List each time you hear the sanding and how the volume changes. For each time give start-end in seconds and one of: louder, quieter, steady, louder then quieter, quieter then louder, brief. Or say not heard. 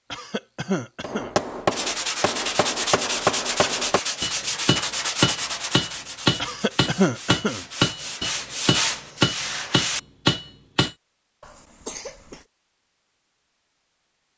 1.7-10.0 quieter then louder.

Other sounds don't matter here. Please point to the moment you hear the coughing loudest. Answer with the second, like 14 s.
7 s.